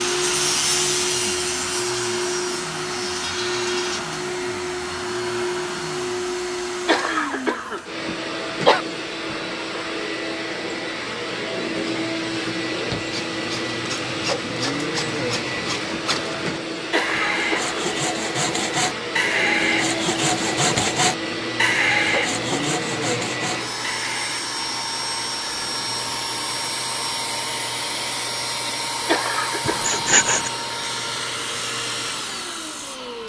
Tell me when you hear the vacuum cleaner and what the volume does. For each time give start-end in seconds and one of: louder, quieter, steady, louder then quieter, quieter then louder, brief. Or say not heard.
0.0-33.2 steady.